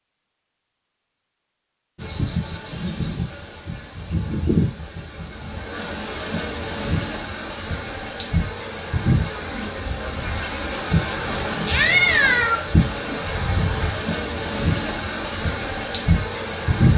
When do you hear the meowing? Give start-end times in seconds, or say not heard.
11.7-12.6.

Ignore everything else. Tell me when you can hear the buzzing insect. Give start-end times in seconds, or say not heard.
1.9-16.9.